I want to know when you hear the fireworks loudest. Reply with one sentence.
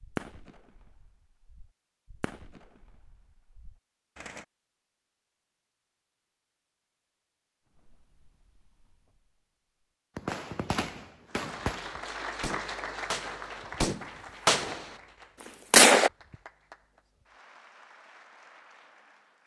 The loudest moment of the fireworks is at 16 seconds.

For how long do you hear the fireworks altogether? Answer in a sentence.
You can hear the fireworks for 11 seconds altogether.